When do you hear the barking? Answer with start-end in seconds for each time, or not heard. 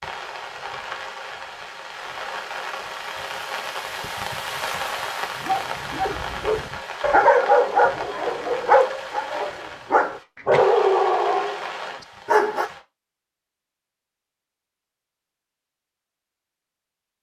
5.3-11.7, 12.2-12.7.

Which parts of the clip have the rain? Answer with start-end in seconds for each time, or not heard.
0.0-12.8.